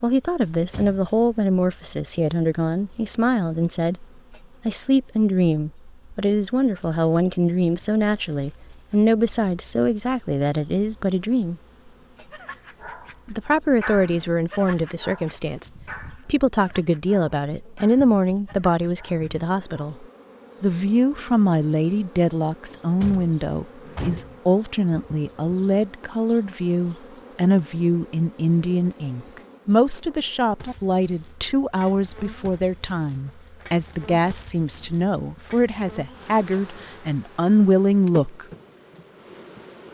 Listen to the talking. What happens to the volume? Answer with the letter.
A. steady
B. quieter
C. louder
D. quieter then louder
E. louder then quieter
A.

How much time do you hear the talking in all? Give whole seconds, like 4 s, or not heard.
36 s.